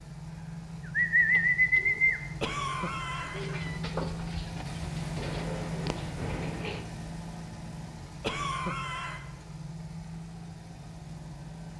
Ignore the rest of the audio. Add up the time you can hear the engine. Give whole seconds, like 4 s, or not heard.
12 s.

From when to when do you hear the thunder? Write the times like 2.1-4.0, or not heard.
4.7-6.7.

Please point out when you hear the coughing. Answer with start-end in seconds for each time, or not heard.
2.4-3.8, 8.2-9.2.